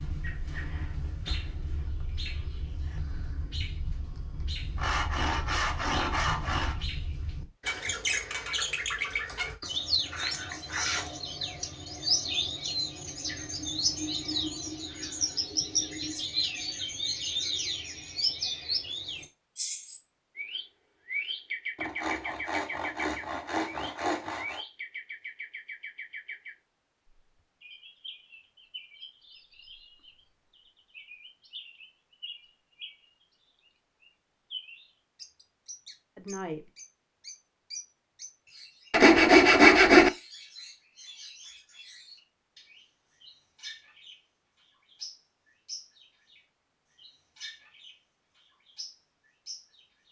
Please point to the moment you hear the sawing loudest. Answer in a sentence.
The loudest moment of the sawing is at 40 seconds.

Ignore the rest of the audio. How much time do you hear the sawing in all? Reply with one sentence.
You can hear the sawing for 6 seconds altogether.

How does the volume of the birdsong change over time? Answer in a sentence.
The volume of the birdsong goes up, then down.